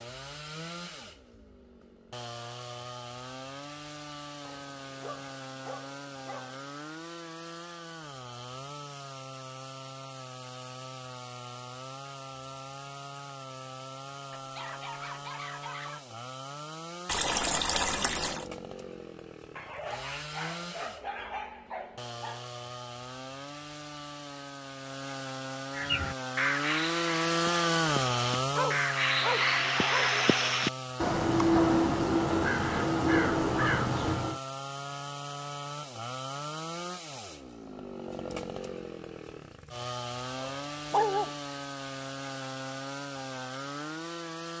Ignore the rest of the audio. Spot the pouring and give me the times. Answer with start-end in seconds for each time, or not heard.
17.1-18.4.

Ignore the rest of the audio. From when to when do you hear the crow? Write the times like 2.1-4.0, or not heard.
25.8-34.4.